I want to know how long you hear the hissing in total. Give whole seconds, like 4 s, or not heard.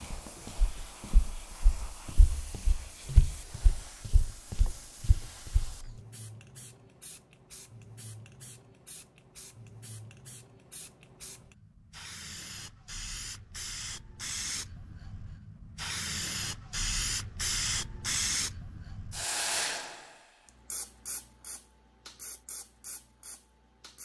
24 s.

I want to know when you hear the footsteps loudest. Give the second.
3 s.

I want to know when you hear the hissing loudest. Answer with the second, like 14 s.
18 s.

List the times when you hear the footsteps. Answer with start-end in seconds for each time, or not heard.
0.0-5.9.